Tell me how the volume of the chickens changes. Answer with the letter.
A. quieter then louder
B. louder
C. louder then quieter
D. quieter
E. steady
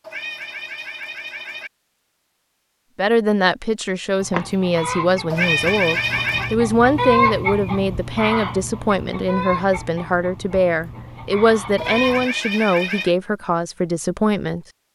C.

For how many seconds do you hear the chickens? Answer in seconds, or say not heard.
8 s.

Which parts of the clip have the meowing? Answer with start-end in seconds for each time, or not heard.
0.0-1.7, 5.3-6.5, 11.8-13.2.